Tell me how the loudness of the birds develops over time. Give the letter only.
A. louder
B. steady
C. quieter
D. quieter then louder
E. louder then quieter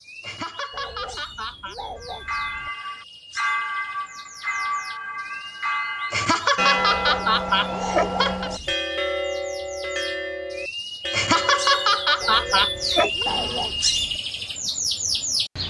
A.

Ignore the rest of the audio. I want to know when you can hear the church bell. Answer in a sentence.
You can hear the church bell from 1.9 to 13.8 s.